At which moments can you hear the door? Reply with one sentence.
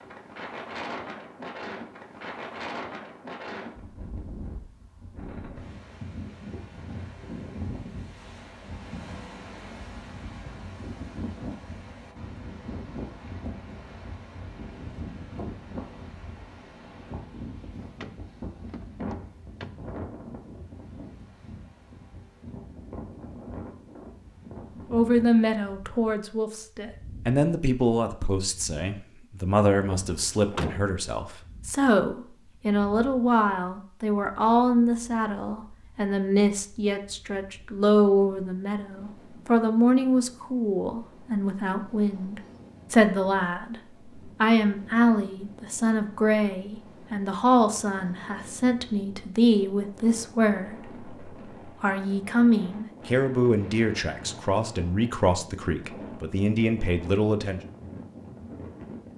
You can hear the door from 17.8 to 19.8 s and from 29.9 to 30.9 s.